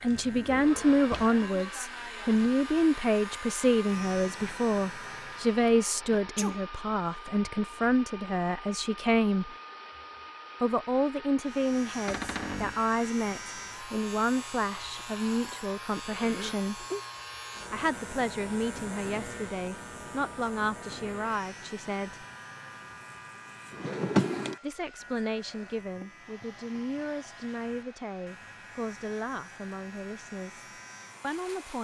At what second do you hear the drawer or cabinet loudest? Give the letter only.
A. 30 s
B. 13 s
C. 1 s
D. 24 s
D.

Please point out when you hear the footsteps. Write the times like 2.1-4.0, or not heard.
not heard.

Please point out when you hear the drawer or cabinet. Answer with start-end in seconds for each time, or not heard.
0.0-1.4, 12.1-12.8, 23.7-24.6.